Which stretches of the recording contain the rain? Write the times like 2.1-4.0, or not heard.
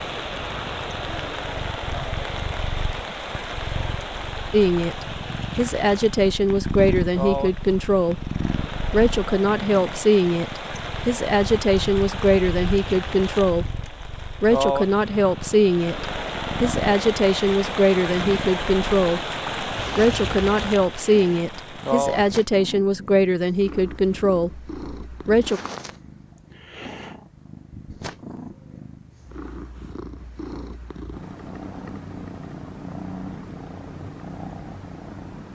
0.0-22.4.